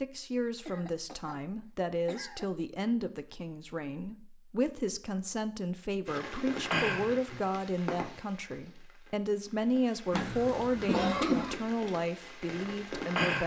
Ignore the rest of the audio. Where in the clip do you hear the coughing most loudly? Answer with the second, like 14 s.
11 s.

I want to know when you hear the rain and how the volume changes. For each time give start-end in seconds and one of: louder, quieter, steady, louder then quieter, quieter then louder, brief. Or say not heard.
6.0-13.4 quieter then louder.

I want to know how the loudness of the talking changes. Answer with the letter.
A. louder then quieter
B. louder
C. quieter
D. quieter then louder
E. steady
E.